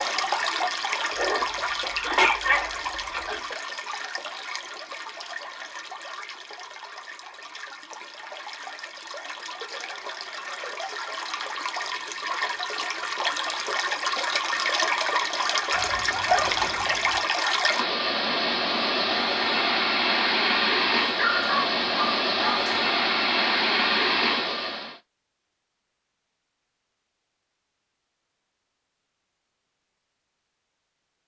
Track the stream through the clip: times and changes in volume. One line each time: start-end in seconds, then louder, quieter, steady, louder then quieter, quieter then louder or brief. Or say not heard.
0.0-24.9 quieter then louder.